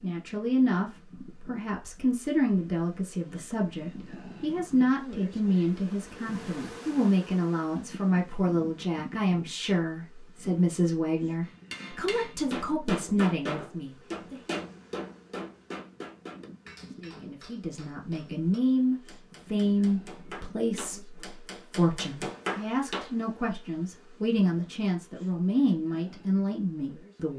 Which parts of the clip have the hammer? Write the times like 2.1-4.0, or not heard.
11.4-23.1.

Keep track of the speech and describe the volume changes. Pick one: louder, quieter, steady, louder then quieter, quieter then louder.
steady.